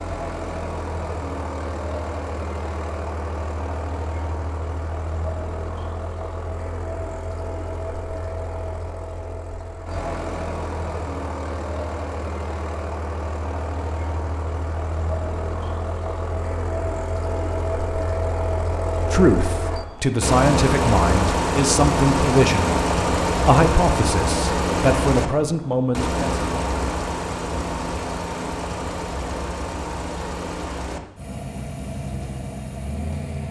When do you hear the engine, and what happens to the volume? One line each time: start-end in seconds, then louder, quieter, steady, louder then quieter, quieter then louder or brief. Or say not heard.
0.0-33.4 louder then quieter.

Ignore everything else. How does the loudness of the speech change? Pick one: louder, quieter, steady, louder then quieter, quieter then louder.
steady.